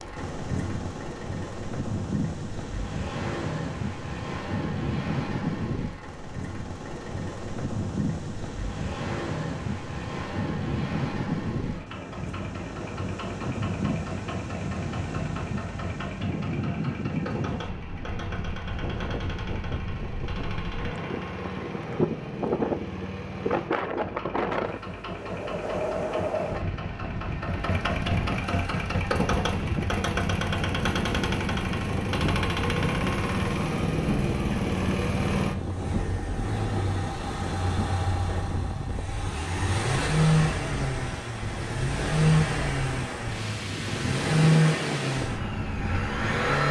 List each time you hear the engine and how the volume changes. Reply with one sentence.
You can hear the engine from 0.0 to 46.6 s, getting louder.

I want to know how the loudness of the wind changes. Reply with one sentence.
The volume of the wind stays about the same.